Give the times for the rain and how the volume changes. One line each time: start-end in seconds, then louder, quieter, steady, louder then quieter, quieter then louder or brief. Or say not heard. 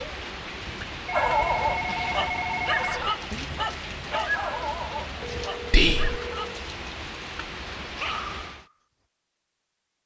0.0-8.7 steady.